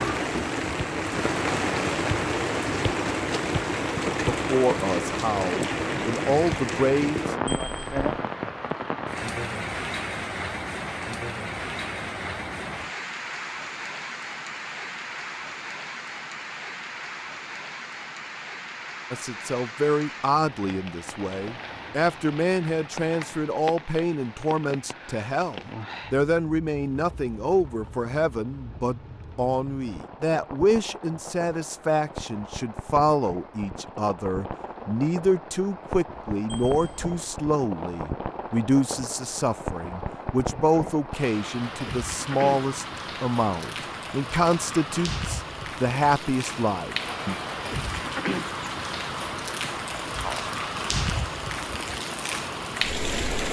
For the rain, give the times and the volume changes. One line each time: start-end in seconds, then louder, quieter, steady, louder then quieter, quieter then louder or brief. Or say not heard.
0.0-53.4 quieter then louder.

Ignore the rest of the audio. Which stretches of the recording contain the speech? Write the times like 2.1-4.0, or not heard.
4.2-7.3, 19.1-47.4.